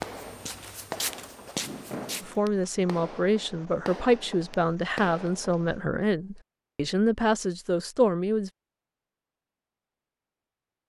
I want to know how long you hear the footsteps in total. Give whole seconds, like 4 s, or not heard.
2 s.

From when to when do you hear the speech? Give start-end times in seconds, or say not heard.
2.2-8.5.